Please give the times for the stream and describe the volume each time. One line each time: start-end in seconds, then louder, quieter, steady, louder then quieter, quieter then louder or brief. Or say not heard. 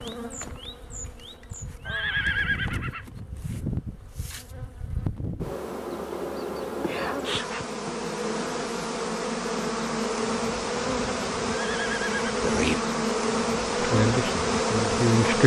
not heard.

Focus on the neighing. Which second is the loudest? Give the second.
2 s.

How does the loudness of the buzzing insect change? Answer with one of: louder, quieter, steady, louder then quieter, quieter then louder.
louder.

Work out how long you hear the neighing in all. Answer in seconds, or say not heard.
2 s.